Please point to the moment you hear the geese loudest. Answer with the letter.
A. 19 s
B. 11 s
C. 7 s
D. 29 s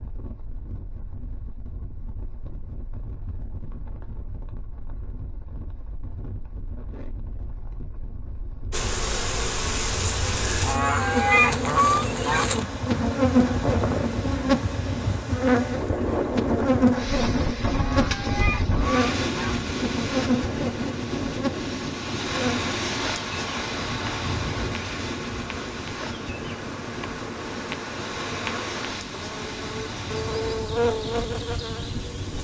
B.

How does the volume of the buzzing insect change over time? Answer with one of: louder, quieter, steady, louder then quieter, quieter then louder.
quieter then louder.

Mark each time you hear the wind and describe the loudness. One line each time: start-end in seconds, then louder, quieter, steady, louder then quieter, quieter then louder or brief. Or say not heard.
0.0-32.3 louder then quieter.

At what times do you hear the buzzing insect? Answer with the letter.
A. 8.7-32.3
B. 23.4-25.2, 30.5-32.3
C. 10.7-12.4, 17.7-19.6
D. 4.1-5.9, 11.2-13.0
A.